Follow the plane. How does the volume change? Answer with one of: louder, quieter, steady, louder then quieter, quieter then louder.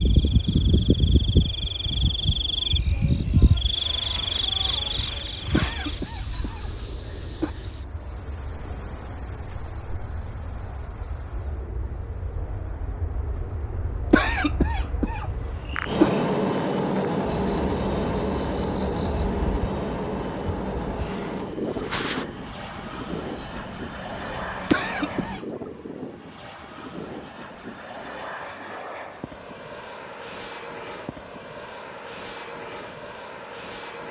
louder then quieter.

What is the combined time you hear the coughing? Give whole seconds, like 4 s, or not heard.
5 s.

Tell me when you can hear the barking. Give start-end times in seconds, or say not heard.
not heard.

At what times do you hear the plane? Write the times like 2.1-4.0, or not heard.
0.0-34.0.